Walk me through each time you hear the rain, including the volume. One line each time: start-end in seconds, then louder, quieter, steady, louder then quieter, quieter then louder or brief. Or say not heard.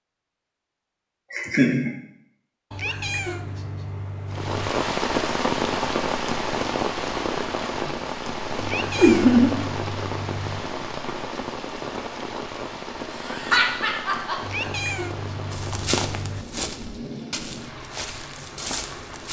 4.3-19.2 quieter.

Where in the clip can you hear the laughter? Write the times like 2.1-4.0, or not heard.
1.3-1.9, 8.9-9.6, 13.2-14.3.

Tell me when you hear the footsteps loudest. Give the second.
16 s.